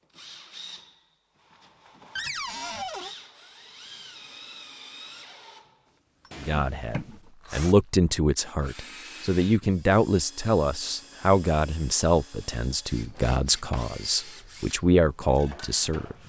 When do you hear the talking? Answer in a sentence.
You can hear the talking from 6.4 to 16.1 s.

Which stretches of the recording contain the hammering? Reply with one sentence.
The hammering can't be heard in this clip.